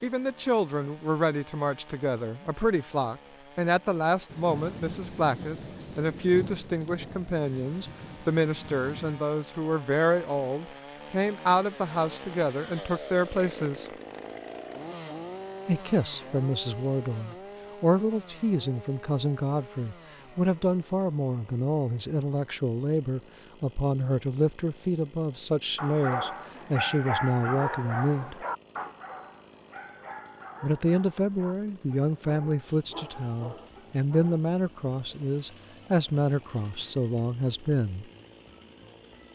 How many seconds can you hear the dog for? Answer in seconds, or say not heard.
9 s.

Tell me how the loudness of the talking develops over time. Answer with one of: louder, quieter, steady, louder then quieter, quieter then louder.
steady.